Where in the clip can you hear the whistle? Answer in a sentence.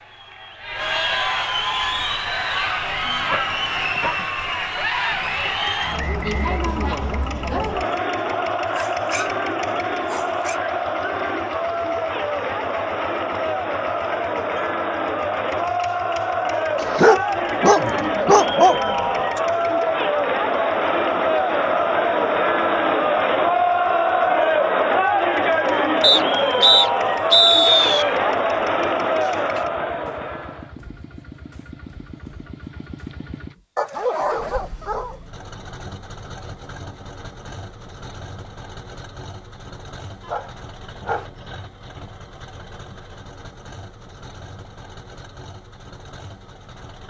You can hear the whistle from 5.2 to 7.2 s and from 26.0 to 28.1 s.